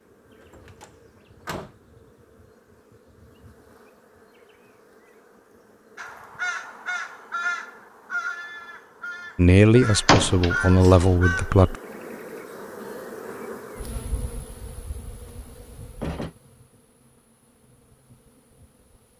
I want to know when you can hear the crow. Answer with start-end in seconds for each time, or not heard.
6.0-11.5.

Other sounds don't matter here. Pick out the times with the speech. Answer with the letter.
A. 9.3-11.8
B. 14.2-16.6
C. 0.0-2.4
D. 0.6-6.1
A.